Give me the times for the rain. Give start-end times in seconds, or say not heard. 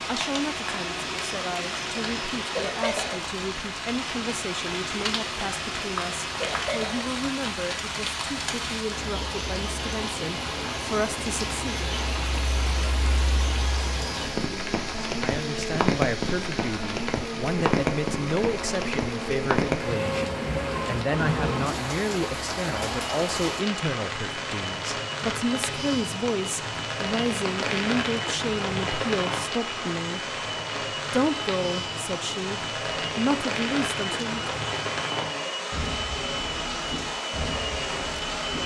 0.0-38.6.